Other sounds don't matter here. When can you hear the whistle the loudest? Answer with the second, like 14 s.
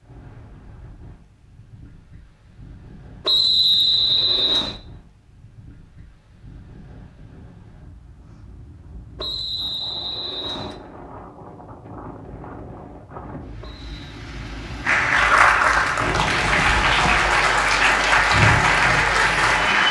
4 s.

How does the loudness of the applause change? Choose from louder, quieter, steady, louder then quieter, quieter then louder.
steady.